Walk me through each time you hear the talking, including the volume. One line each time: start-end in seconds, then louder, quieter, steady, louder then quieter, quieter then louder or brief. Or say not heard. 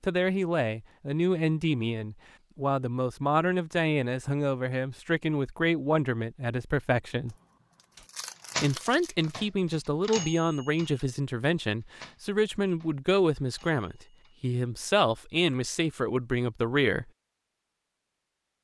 0.0-7.3 steady
8.6-17.1 steady.